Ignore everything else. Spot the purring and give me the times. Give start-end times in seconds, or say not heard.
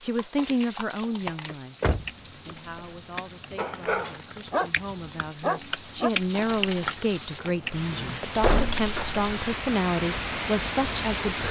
not heard.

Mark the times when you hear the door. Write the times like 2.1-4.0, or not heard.
1.5-2.5, 8.4-9.3.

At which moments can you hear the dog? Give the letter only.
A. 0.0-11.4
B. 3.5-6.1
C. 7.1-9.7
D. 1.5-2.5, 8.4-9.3
B.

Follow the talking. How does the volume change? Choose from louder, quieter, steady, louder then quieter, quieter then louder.
quieter then louder.